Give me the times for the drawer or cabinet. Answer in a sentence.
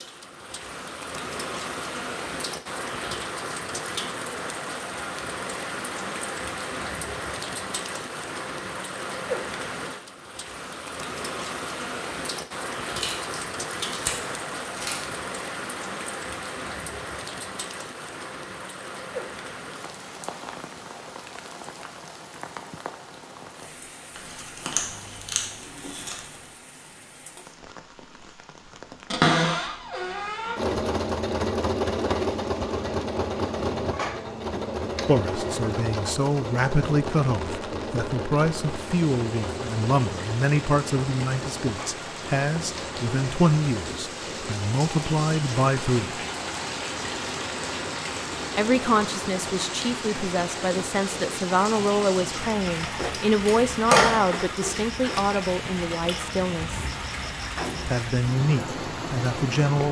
You can hear the drawer or cabinet from 29.1 to 30.6 s.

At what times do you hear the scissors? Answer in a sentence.
You can hear the scissors from 12.8 to 15.2 s, from 24.1 to 26.2 s and from 53.5 to 54.2 s.